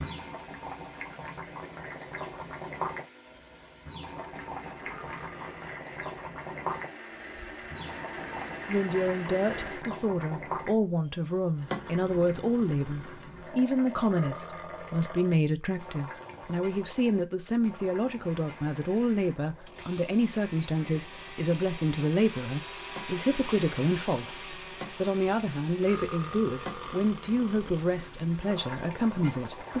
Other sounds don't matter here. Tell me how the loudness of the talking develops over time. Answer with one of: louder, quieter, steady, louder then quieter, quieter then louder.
steady.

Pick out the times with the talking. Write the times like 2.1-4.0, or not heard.
8.7-29.7.